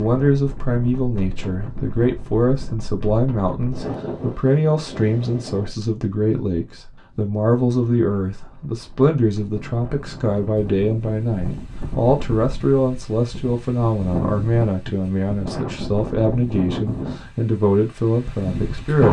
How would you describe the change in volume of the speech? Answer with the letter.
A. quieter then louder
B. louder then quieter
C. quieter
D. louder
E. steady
E.